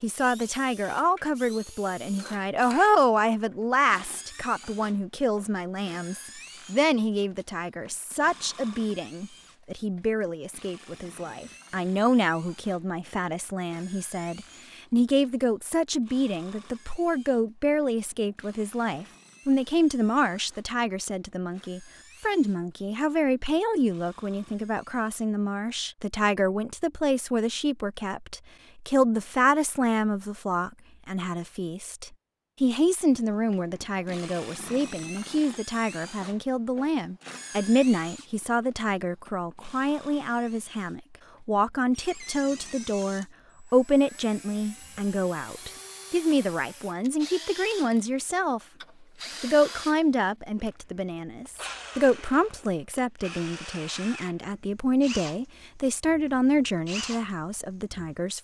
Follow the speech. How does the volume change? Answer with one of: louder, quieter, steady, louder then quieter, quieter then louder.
steady.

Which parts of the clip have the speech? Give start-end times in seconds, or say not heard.
0.0-48.6, 49.4-58.3.